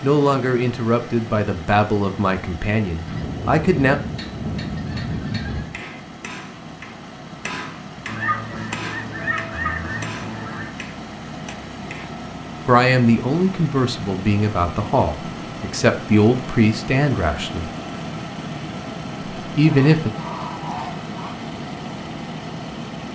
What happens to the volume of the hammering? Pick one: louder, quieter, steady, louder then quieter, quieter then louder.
louder then quieter.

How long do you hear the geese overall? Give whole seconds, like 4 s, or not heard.
7 s.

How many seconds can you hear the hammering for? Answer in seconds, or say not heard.
8 s.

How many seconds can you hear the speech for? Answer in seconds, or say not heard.
10 s.